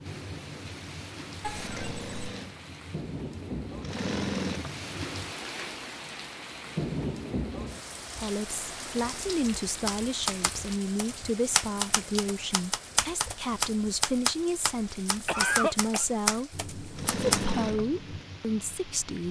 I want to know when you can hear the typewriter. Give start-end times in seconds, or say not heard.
9.8-17.4.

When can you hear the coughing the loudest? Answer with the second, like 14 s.
16 s.